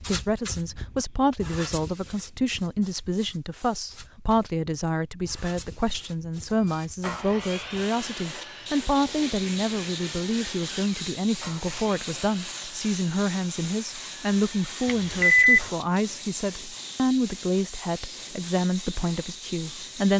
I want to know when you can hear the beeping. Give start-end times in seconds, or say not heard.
14.8-15.6.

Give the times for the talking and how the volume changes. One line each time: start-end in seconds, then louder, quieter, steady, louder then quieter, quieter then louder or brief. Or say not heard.
0.0-20.1 steady.